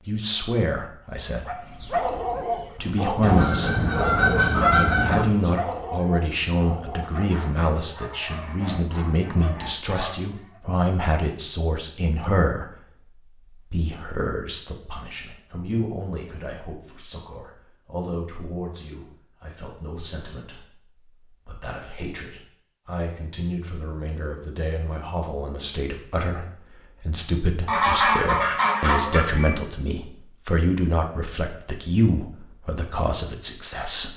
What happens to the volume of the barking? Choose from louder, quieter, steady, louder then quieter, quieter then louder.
quieter.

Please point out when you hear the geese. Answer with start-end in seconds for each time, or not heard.
3.2-5.2, 27.6-29.6.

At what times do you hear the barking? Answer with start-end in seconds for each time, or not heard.
1.4-10.6.